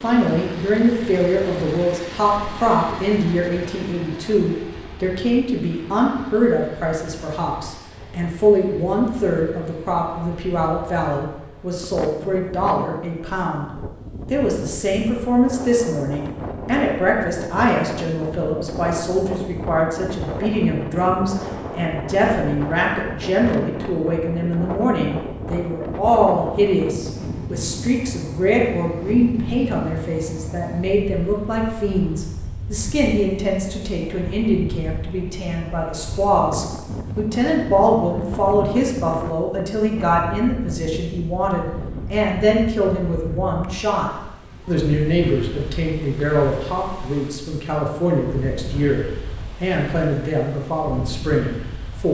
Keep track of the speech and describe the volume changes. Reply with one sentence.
The volume of the speech stays about the same.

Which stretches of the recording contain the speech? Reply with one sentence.
The speech can be heard from 0.0 to 13.7 s and from 14.3 to 52.0 s.